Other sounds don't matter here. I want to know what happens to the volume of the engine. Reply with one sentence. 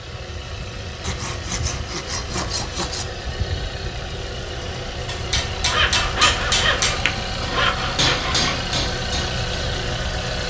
The volume of the engine goes up.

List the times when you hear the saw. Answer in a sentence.
You can hear the saw from 1.0 to 3.0 s and from 5.7 to 8.6 s.